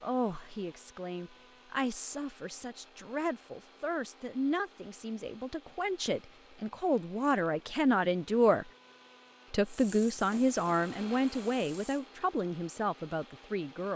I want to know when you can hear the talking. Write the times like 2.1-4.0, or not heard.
0.0-8.7, 9.5-13.9.